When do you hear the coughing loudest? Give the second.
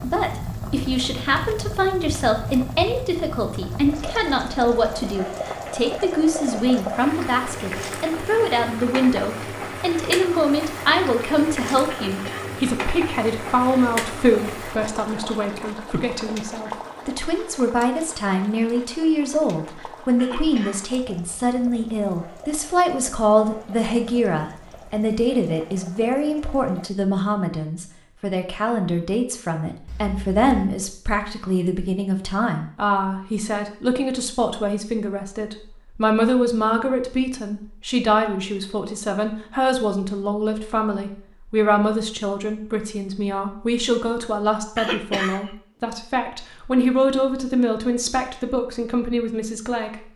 45 s.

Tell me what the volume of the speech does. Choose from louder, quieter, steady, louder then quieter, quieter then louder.
steady.